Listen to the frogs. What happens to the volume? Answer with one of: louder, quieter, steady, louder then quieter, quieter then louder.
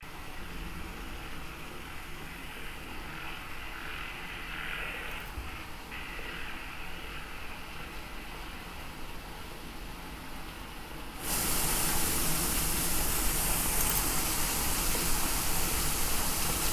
louder then quieter.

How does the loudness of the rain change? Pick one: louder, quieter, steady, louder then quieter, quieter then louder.
louder.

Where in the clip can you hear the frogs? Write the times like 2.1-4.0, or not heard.
0.0-8.8.